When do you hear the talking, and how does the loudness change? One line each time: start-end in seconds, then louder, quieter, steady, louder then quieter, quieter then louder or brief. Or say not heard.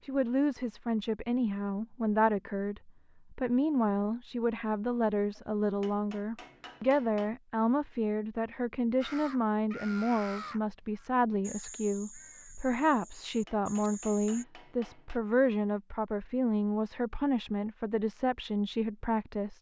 0.0-19.5 steady.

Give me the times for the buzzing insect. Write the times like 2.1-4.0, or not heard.
not heard.